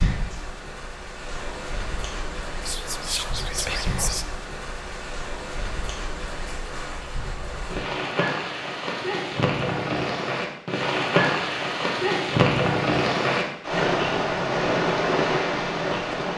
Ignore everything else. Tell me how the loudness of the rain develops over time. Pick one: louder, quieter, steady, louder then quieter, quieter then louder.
louder.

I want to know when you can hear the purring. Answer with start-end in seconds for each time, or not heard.
not heard.